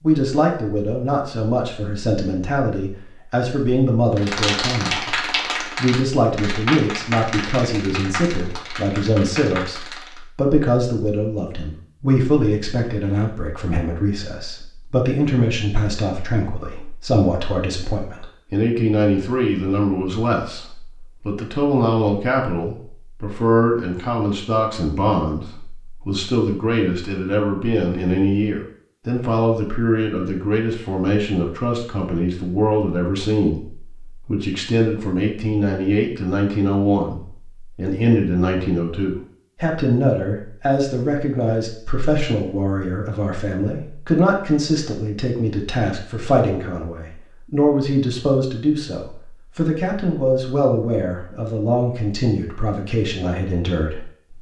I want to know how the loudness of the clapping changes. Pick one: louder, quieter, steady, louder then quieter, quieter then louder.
quieter.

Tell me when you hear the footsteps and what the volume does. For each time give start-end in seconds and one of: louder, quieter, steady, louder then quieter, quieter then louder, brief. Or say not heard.
not heard.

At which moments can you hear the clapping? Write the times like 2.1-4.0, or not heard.
4.2-10.2.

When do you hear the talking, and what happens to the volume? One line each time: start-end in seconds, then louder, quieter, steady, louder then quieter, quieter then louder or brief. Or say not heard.
0.0-54.1 steady.